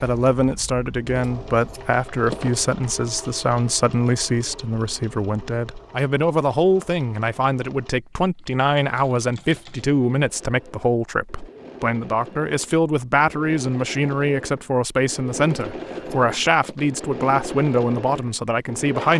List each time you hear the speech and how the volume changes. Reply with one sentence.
The speech can be heard from 0.0 to 19.1 s, at a steady volume.